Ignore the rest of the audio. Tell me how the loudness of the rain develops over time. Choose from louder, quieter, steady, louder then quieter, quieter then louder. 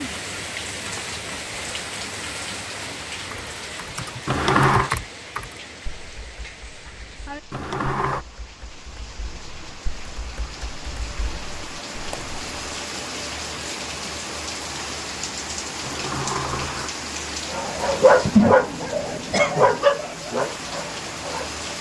quieter then louder.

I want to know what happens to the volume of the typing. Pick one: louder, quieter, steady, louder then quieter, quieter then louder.
quieter then louder.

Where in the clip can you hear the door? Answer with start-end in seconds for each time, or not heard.
4.2-4.9, 7.5-8.2, 15.8-16.9.